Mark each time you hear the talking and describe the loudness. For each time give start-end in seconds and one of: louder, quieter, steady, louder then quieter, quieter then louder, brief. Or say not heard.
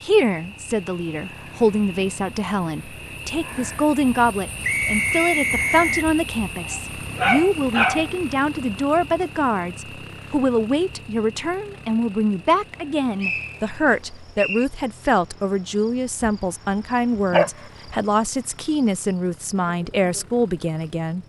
0.0-21.2 steady.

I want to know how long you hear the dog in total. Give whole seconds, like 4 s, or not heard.
3 s.